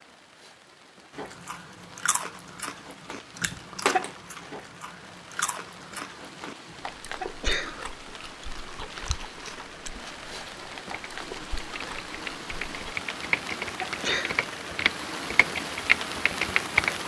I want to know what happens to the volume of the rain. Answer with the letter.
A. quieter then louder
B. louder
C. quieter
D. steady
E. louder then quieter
B.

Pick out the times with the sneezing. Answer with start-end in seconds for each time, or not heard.
3.1-4.0, 6.7-7.8, 13.2-14.4.